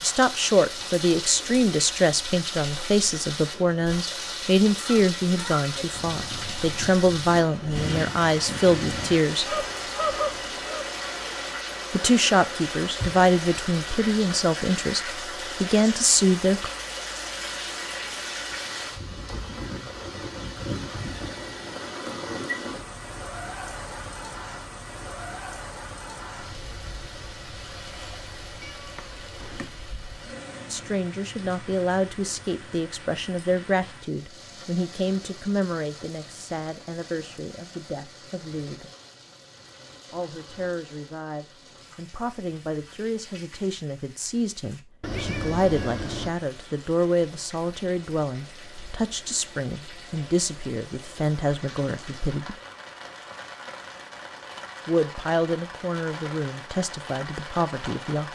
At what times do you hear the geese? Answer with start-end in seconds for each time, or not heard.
4.7-10.9.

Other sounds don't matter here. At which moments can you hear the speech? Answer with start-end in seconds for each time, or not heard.
0.0-9.6, 11.9-16.7, 30.6-38.9, 40.1-52.5, 54.9-58.3.